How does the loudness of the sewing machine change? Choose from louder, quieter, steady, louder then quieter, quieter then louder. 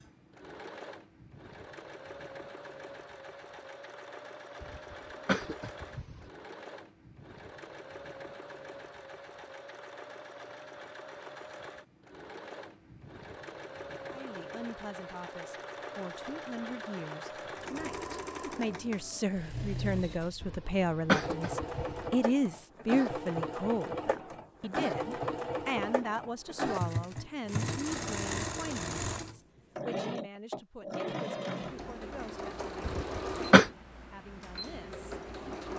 louder.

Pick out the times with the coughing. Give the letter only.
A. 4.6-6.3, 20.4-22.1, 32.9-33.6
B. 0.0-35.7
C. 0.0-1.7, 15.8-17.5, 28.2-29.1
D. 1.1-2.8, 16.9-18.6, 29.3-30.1
A.